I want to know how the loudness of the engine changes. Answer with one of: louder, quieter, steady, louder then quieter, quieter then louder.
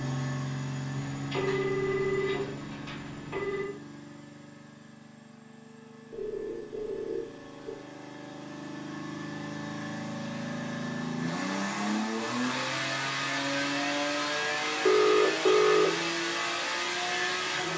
quieter then louder.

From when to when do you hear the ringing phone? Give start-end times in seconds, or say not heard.
0.9-3.7, 6.1-7.8, 14.8-15.9.